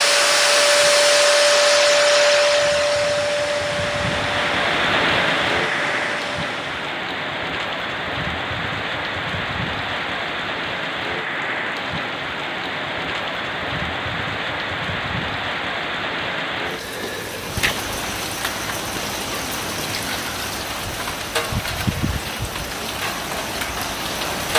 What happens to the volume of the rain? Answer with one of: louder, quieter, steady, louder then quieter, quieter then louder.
steady.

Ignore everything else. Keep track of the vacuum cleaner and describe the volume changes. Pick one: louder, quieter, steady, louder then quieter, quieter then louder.
quieter.